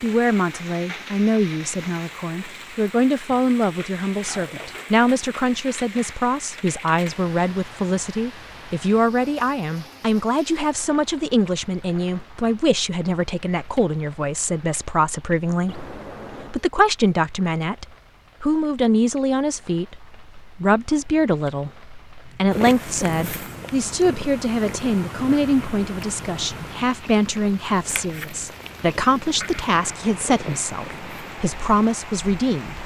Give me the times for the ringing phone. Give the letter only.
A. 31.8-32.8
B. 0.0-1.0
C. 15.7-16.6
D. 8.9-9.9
C.